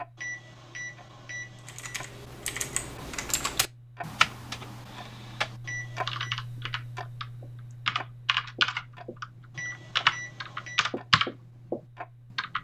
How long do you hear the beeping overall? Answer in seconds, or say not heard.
4 s.